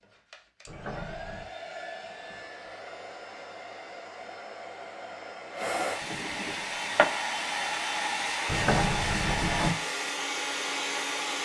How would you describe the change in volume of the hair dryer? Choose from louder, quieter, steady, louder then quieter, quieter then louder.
louder.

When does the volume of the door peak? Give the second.
9 s.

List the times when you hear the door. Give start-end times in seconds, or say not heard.
0.7-1.4, 8.4-9.8.